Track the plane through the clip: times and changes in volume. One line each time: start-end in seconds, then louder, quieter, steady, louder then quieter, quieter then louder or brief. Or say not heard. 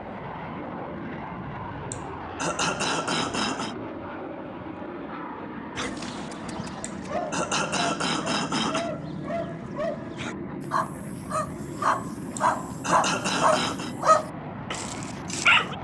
0.0-15.7 steady.